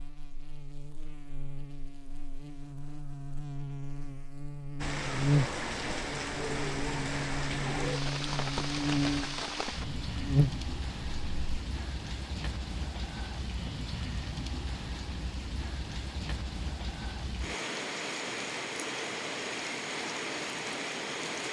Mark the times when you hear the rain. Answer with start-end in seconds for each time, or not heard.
4.8-21.4.